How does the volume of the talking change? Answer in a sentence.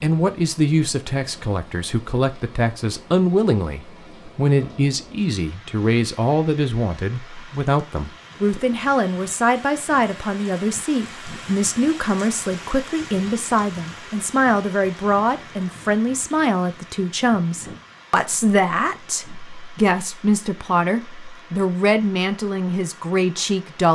The volume of the talking stays about the same.